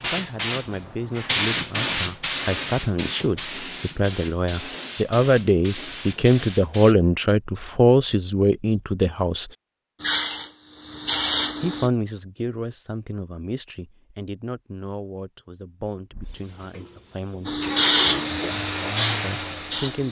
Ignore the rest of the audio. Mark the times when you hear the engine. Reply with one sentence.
The engine can be heard from 16.1 to 20.0 s.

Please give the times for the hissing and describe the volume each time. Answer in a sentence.
You can hear the hissing from 0.0 to 7.0 s, getting quieter; briefly from 10.0 to 11.9 s; and briefly from 17.4 to 20.0 s.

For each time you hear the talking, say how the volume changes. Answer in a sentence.
The talking can be heard from 0.0 to 9.5 s, getting louder; from 11.6 to 17.6 s, getting quieter; and briefly from 19.2 to 20.0 s.